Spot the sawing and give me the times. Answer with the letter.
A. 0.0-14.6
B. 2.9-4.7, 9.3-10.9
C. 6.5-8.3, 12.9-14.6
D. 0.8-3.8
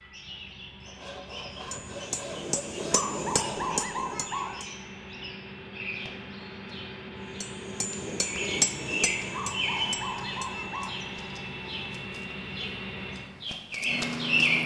D.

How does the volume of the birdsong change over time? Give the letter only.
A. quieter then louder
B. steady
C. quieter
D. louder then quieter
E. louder
E.